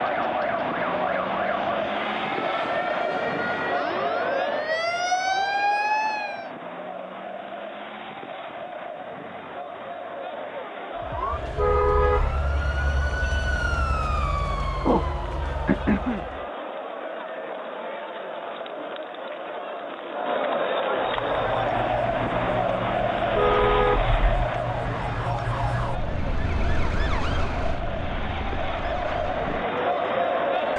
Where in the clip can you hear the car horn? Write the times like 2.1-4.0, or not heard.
11.6-12.3, 23.4-24.4.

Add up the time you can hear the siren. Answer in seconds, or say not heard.
22 s.